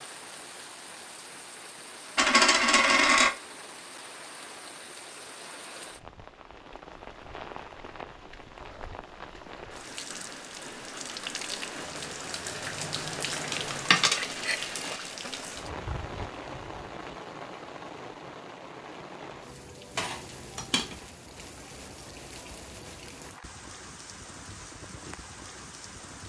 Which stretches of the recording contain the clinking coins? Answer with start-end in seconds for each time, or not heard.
2.1-3.3, 13.9-15.1, 19.9-20.9.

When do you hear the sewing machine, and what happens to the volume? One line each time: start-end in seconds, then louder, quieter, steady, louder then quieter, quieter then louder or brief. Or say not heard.
not heard.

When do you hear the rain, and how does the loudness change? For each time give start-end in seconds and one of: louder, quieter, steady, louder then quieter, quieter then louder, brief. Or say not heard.
0.0-26.2 louder then quieter.